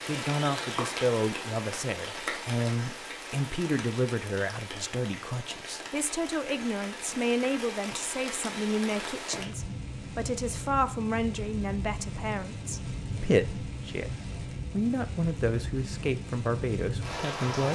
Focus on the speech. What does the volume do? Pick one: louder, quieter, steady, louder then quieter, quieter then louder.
steady.